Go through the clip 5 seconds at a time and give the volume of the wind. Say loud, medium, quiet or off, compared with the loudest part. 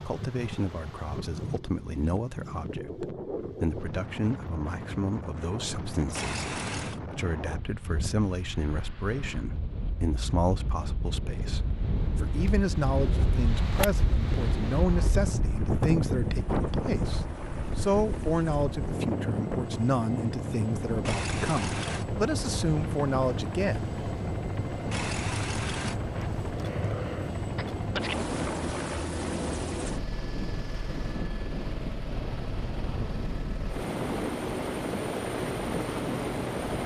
medium, medium, loud, loud, medium, medium, medium, medium.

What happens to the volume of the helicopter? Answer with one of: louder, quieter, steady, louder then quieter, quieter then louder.
louder.